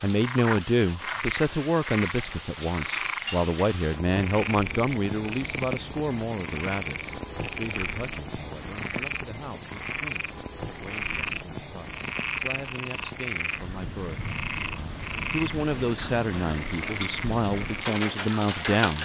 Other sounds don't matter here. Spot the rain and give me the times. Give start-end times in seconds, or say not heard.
0.0-18.9.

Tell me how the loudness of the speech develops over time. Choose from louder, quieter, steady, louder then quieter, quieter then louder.
quieter then louder.